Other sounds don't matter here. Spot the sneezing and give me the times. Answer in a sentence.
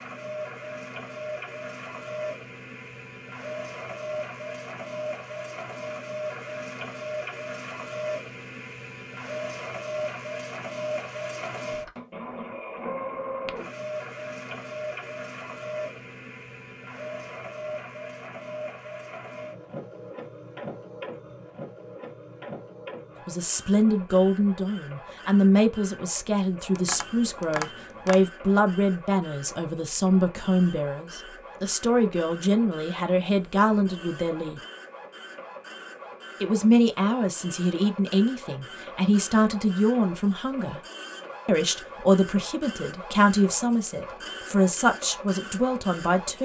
You can't hear the sneezing here.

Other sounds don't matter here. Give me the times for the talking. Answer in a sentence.
The talking can be heard from 23.2 to 34.6 s, from 36.4 to 40.8 s and from 41.5 to 46.3 s.